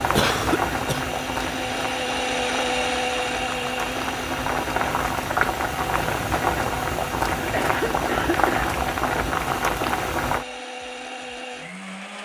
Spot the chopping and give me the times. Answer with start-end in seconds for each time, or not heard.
not heard.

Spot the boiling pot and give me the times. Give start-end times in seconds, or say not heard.
0.0-10.4.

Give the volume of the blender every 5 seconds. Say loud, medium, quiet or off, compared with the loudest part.
loud, medium, medium.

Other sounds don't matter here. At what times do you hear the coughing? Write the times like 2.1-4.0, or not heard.
0.1-1.1, 7.3-8.7.